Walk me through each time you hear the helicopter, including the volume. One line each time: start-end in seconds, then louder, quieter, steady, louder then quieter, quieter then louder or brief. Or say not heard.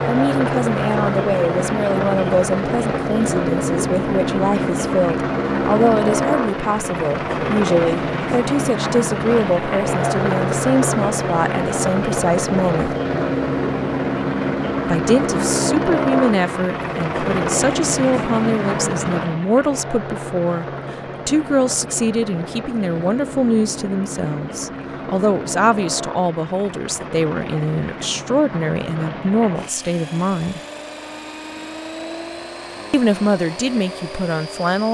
0.0-34.9 quieter.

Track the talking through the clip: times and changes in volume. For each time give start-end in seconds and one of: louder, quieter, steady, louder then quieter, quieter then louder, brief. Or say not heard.
0.1-12.9 steady
14.8-20.6 steady
21.2-30.6 steady
32.9-34.9 brief.